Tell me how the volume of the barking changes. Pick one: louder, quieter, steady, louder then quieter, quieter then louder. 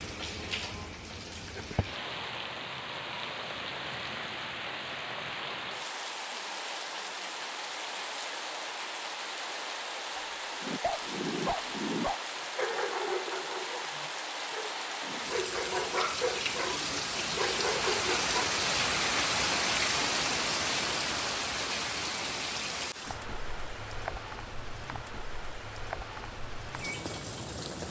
quieter then louder.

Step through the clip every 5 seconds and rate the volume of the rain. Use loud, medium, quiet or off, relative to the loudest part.
medium, medium, medium, loud, loud, medium.